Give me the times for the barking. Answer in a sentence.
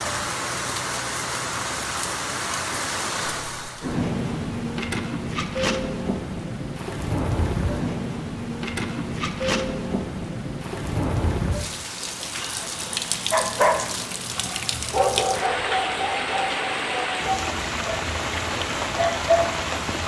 The barking can be heard from 13.3 to 19.4 s.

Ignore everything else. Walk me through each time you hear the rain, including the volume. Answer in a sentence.
The rain can be heard from 0.0 to 20.0 s, at a steady volume.